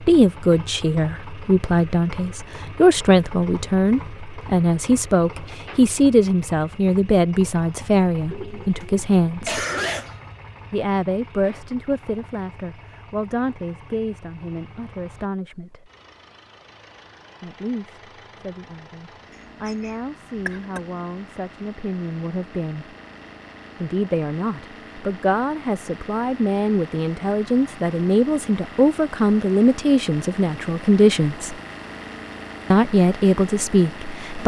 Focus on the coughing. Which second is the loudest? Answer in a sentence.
The volume of the coughing peaks at 10 seconds.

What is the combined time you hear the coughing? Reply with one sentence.
You can hear the coughing for 2 seconds altogether.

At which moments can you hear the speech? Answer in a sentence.
The speech can be heard from 0.0 to 9.7 s, from 10.7 to 15.9 s, from 17.4 to 22.9 s, from 23.8 to 31.6 s and from 32.7 to 34.4 s.